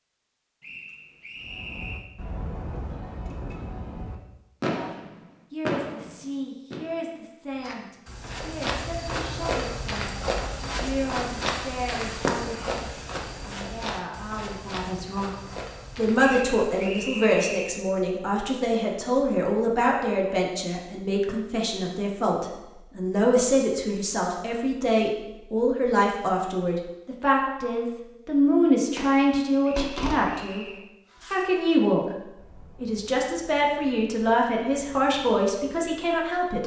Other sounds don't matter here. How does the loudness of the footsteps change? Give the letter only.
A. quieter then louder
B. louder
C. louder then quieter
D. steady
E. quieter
E.